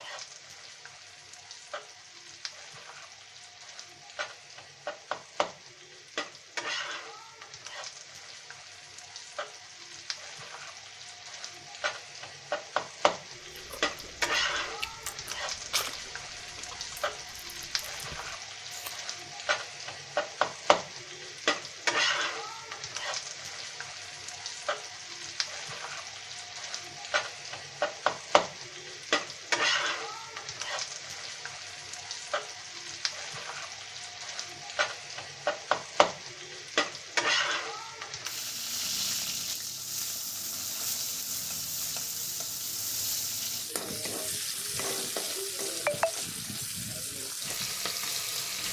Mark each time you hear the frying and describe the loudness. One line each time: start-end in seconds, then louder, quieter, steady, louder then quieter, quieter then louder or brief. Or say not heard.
0.0-48.6 louder.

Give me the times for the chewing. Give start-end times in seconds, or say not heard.
13.4-19.0.